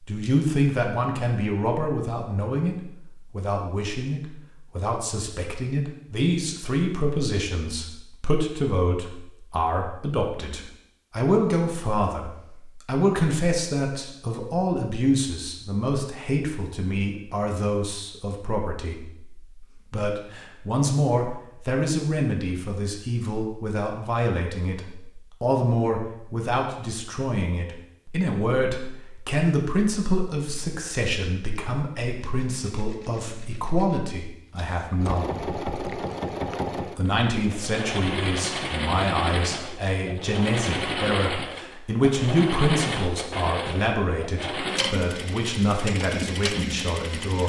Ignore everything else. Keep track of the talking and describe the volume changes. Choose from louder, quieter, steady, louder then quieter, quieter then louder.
steady.